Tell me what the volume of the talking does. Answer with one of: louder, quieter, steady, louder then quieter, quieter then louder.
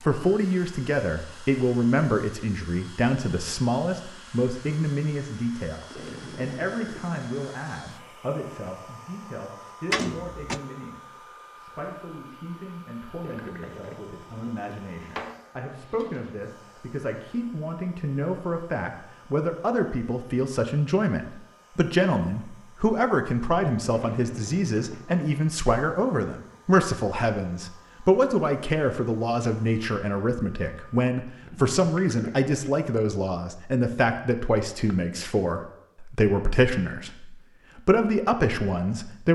quieter then louder.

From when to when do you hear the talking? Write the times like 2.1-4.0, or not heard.
0.0-39.3.